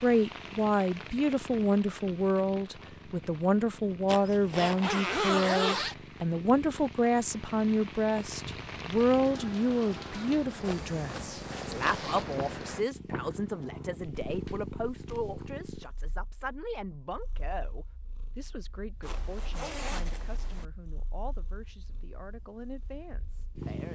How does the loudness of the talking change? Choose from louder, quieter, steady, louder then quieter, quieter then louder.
quieter.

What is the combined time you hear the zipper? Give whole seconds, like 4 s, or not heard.
4 s.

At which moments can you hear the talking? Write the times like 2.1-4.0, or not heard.
0.0-23.9.